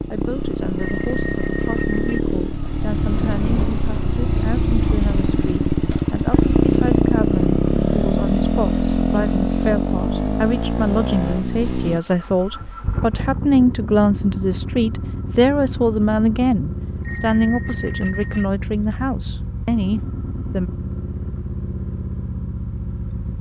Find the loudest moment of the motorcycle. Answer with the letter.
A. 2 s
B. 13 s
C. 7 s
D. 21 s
C.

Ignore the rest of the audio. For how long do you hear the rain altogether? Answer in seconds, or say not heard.
not heard.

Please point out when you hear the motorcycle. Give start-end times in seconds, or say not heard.
0.0-23.3.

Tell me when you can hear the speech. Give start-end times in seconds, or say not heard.
0.1-20.7.